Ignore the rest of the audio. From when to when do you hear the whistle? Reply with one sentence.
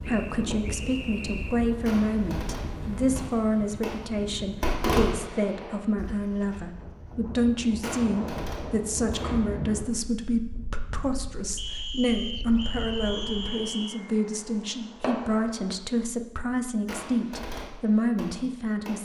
The whistle can be heard from 0.0 to 1.6 s and from 11.6 to 14.0 s.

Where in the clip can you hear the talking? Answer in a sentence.
You can hear the talking from 0.0 to 18.9 s.